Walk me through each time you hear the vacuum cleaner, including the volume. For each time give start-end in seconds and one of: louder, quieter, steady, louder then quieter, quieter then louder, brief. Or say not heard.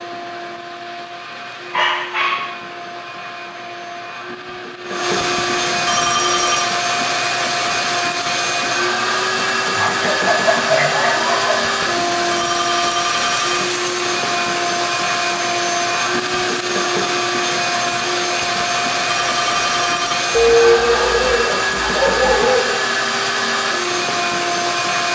0.0-25.1 louder.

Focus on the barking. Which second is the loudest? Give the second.
21 s.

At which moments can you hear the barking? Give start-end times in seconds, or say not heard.
1.7-2.5, 9.8-11.7, 20.3-22.8.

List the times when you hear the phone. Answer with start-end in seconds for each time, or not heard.
5.2-6.7, 11.6-13.7, 18.4-20.2.